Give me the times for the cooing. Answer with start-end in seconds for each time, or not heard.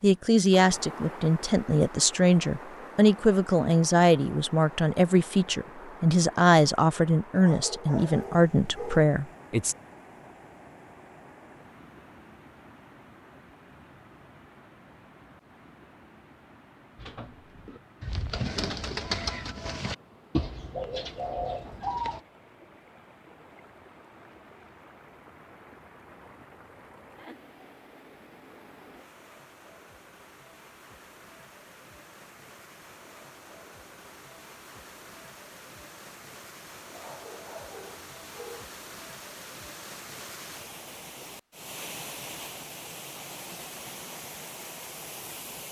16.9-22.2.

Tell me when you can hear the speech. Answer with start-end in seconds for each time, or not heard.
0.0-9.8.